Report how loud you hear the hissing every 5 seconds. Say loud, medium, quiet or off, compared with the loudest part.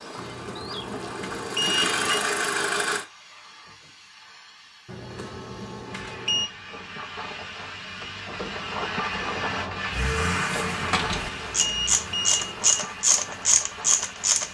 quiet, loud, loud.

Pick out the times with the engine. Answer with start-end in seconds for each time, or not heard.
0.0-3.0, 9.9-12.3.